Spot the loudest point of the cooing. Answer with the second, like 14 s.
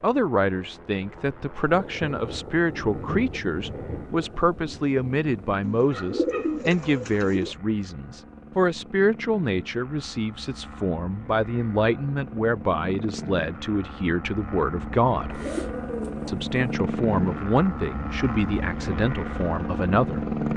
6 s.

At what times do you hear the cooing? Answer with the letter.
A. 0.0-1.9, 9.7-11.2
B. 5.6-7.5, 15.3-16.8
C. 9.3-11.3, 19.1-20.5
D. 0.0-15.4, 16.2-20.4
B.